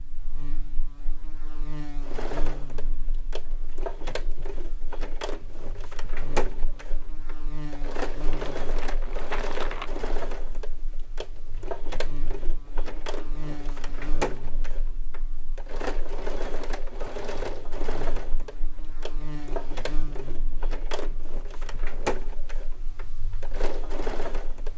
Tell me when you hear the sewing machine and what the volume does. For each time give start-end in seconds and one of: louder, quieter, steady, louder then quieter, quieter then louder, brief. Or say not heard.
2.0-24.7 steady.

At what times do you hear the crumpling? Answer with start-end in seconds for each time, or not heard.
8.3-9.9.